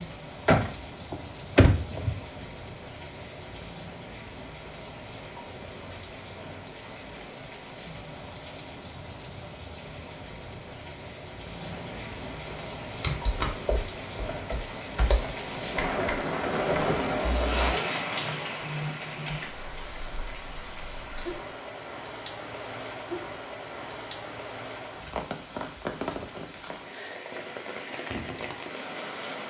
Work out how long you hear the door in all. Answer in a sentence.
You can hear the door for 2 seconds altogether.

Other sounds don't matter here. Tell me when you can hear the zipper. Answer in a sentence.
The zipper can be heard from 17.2 to 18.4 s.